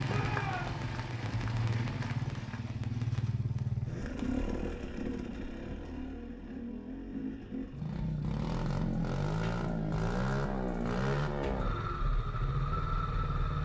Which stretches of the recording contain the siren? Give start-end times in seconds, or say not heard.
not heard.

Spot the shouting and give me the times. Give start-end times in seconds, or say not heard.
0.0-0.8.